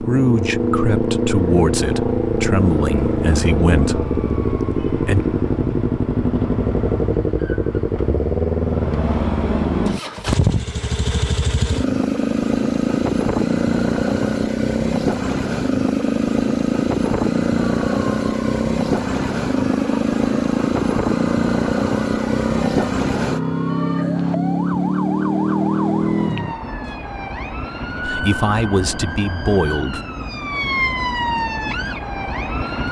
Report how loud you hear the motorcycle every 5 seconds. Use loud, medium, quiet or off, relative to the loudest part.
loud, loud, loud, loud, loud, loud, off.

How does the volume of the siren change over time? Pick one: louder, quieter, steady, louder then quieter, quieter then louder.
louder.